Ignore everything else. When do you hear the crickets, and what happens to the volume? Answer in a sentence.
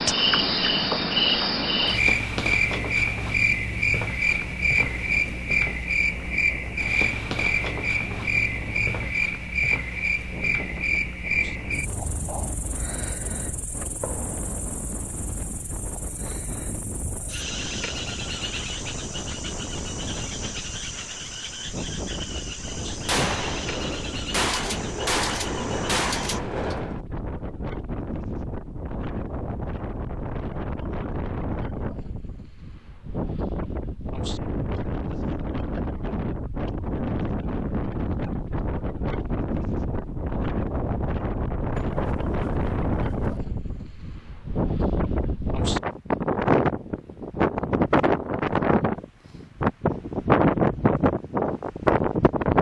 You can hear the crickets from 0.0 to 26.4 s, getting quieter.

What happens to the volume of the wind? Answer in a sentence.
The loudness of the wind goes up.